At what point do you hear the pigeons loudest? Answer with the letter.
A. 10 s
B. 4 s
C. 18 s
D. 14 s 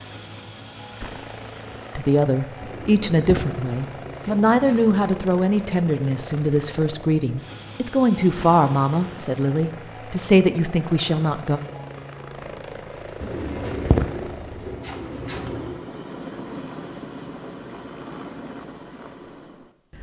D.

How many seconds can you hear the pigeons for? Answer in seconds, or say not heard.
5 s.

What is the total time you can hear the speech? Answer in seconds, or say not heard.
10 s.